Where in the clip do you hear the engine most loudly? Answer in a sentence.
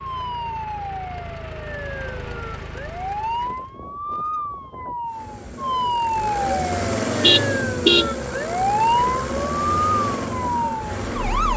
The loudest moment of the engine is at 7 seconds.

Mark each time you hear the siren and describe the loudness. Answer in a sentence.
You can hear the siren from 0.0 to 11.5 s, getting louder.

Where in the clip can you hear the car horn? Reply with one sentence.
You can hear the car horn from 7.1 to 8.1 s.